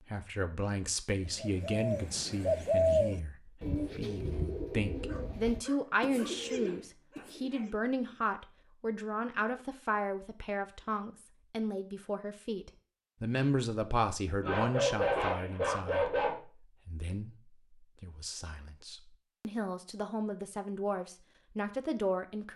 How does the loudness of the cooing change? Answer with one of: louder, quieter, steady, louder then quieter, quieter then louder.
quieter.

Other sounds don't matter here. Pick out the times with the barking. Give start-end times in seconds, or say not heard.
5.0-7.7, 14.4-16.4.